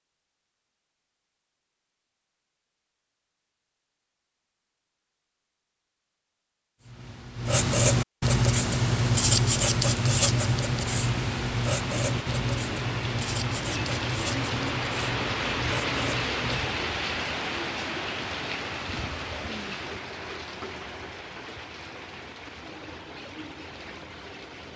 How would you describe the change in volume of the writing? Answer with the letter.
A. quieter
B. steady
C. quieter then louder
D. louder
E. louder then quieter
A.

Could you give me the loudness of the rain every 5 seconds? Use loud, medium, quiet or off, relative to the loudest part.
off, off, loud, loud, medium.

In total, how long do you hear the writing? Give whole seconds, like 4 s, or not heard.
10 s.